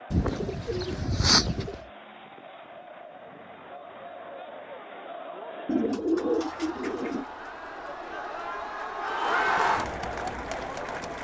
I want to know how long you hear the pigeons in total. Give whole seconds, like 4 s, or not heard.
3 s.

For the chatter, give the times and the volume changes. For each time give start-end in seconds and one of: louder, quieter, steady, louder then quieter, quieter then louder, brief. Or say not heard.
0.0-11.1 louder.